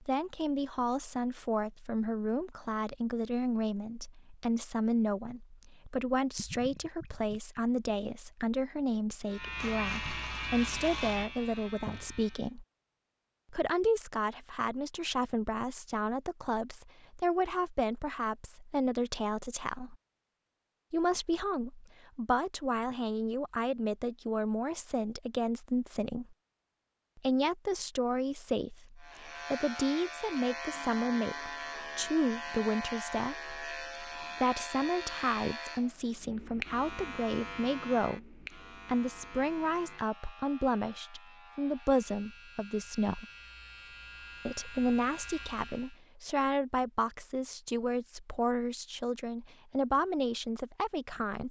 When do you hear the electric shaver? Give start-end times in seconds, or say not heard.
9.2-12.5, 29.0-46.0.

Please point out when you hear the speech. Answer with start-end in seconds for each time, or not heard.
0.0-12.7, 13.5-19.9, 20.9-26.4, 27.1-43.2, 44.5-51.4.